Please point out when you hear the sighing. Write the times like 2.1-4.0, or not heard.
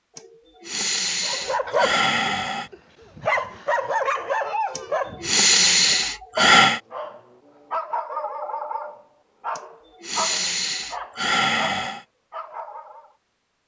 0.1-2.7, 4.8-6.8, 9.6-12.1.